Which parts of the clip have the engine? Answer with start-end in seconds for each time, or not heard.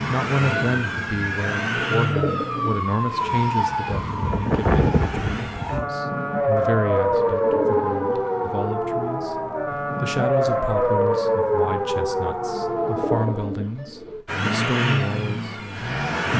0.0-5.8, 14.2-16.3.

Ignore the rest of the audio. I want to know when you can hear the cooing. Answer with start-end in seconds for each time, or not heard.
1.9-3.4, 7.2-8.7, 12.7-14.2.